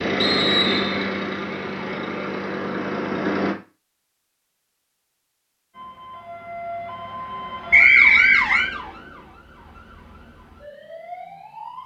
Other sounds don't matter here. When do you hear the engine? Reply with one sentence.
The engine can be heard from 0.0 to 3.5 s.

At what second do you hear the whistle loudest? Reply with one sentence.
The loudest moment of the whistle is at 8 seconds.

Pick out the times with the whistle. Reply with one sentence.
The whistle can be heard from 0.2 to 1.1 s and from 7.7 to 8.7 s.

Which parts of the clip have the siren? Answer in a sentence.
You can hear the siren from 5.7 to 11.8 s.